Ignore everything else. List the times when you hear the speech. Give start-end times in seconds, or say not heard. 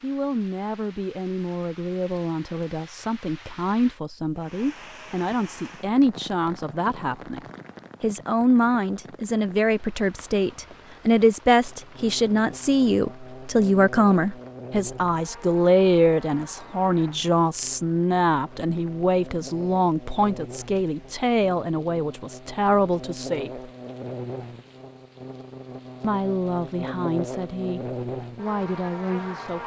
0.0-7.4, 8.0-23.7, 26.0-29.6.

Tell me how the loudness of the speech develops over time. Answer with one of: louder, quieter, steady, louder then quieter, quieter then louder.
louder then quieter.